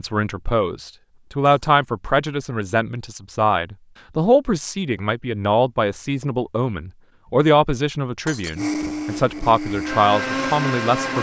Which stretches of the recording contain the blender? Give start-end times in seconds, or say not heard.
8.6-11.1.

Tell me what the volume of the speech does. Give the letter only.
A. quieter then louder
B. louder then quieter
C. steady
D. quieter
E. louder
C.